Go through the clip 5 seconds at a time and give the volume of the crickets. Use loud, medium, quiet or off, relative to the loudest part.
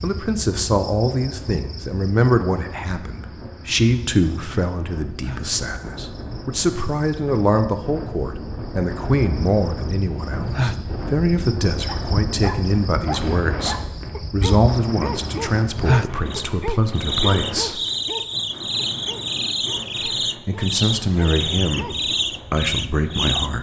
quiet, quiet, medium, loud, loud.